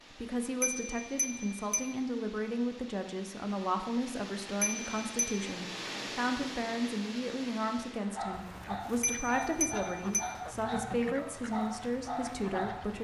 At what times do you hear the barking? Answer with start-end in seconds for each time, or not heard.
8.2-12.9.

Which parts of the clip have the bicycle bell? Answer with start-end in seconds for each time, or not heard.
0.6-1.9, 4.6-5.5, 9.0-10.3.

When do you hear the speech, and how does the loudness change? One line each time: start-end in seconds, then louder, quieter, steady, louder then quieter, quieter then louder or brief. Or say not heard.
0.1-12.9 steady.